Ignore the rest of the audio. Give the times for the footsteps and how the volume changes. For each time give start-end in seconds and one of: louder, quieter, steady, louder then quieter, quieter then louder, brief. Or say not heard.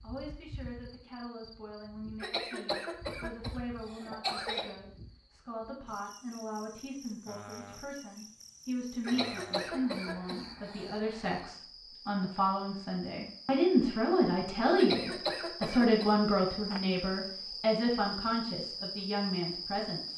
not heard.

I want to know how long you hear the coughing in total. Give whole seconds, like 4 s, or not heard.
6 s.